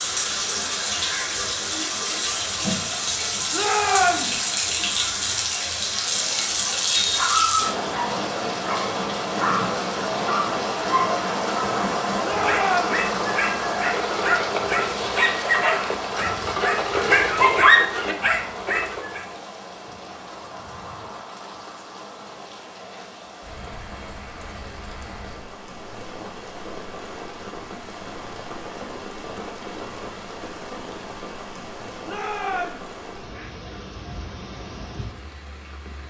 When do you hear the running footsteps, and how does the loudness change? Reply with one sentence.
The running footsteps can't be heard in this clip.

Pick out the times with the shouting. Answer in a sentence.
The shouting can be heard from 3.5 to 4.3 s, from 12.2 to 13.0 s and from 32.0 to 32.9 s.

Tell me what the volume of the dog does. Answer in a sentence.
The loudness of the dog goes up.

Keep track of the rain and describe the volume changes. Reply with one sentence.
The loudness of the rain goes down.